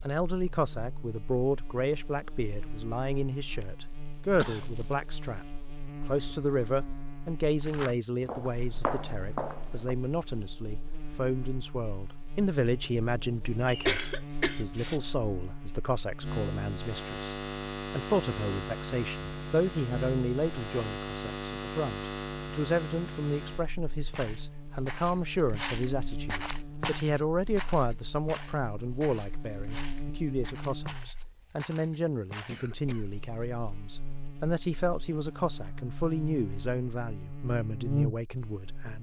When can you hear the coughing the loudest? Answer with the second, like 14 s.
14 s.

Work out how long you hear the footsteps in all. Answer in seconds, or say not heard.
11 s.